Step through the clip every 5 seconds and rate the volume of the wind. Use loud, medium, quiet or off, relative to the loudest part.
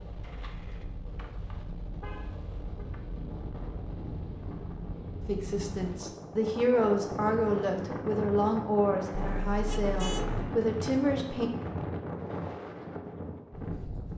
medium, loud, loud.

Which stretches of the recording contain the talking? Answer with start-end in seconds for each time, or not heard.
5.2-11.5.